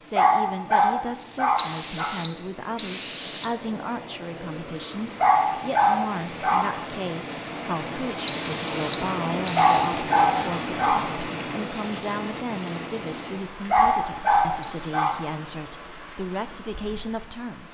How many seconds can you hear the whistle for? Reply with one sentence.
The whistle can be heard for 4 seconds in total.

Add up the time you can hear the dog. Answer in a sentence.
The dog can be heard for 6 seconds in total.